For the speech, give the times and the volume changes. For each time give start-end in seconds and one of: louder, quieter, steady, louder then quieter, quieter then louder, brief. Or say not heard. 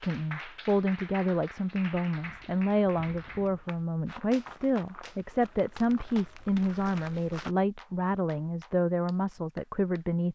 0.0-10.3 steady.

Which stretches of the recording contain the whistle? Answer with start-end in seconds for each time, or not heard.
not heard.